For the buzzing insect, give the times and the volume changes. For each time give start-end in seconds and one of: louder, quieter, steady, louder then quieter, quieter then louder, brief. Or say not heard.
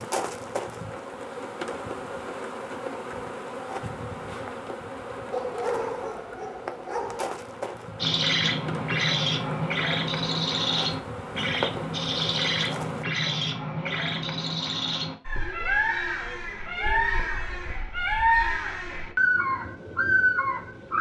0.0-13.1 steady.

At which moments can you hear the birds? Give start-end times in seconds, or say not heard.
8.0-20.9.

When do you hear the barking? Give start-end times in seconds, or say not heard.
5.3-7.3.